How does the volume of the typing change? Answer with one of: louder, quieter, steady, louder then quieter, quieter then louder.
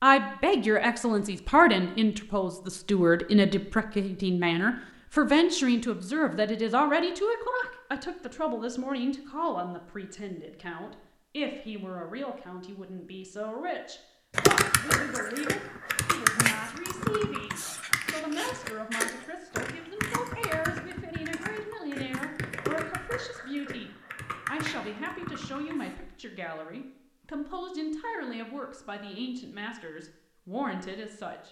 quieter.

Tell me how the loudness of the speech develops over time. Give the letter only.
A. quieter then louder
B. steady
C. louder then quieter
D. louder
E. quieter
E.